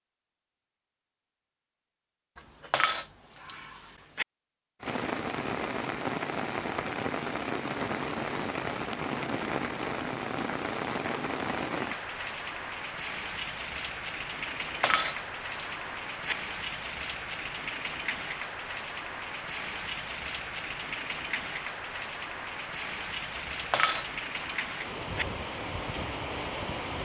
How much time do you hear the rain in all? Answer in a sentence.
You can hear the rain for 22 seconds altogether.